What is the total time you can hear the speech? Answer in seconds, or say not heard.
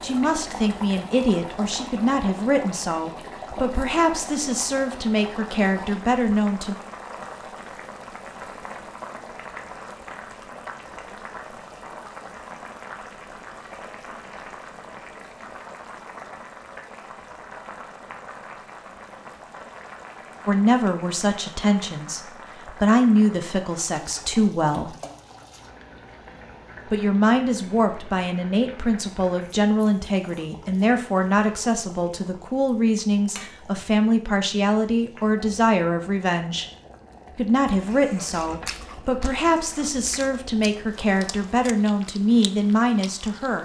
27 s.